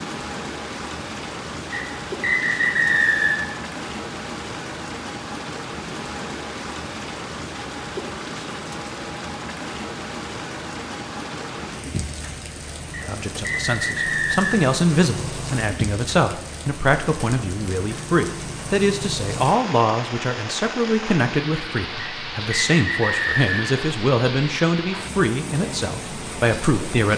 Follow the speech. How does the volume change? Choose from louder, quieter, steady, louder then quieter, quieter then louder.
steady.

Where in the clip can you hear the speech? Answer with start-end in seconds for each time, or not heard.
13.1-27.1.